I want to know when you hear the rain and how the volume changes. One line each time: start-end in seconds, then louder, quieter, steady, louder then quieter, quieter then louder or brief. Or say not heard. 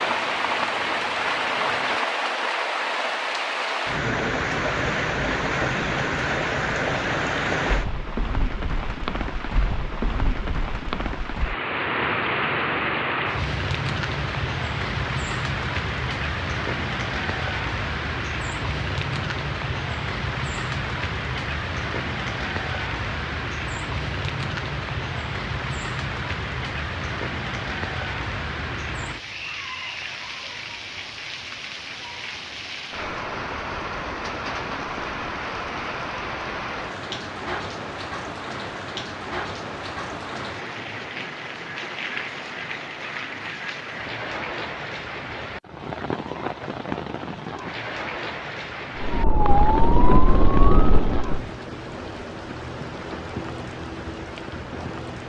0.0-55.2 quieter.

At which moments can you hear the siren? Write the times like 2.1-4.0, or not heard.
49.0-51.5.